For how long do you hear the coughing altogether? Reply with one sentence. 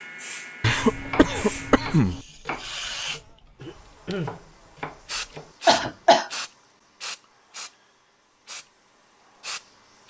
You can hear the coughing for 2 seconds altogether.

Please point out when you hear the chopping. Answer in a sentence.
You can hear the chopping from 0.9 to 6.0 s.